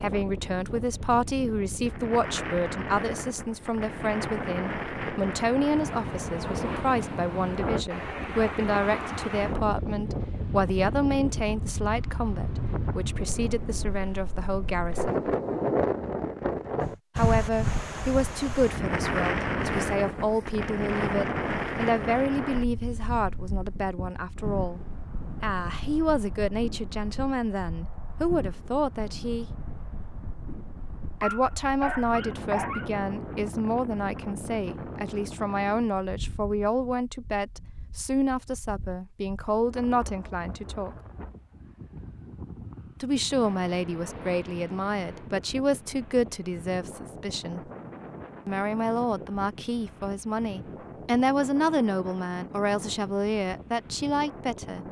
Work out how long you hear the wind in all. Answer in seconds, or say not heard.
55 s.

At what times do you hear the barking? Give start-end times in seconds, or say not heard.
31.2-32.9.